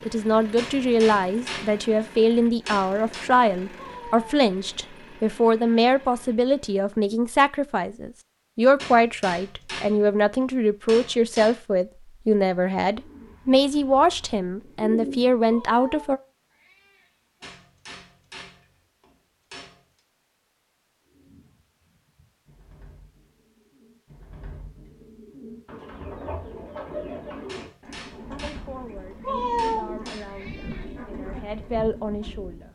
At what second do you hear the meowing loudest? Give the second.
30 s.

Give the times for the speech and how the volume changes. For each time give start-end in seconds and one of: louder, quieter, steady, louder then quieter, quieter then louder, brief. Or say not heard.
0.0-16.2 steady
28.3-32.6 louder.